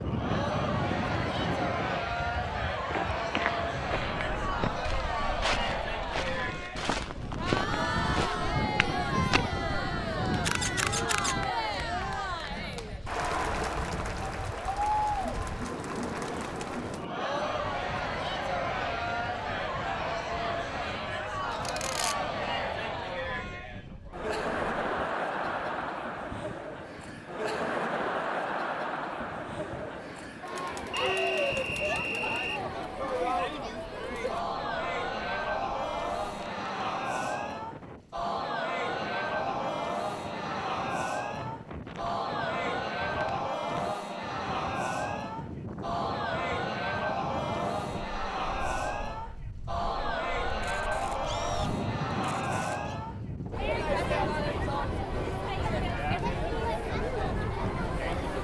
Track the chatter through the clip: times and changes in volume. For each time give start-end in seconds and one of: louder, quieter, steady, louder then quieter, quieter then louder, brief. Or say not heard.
0.0-58.4 steady.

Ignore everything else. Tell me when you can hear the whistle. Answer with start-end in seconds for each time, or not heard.
30.9-32.6.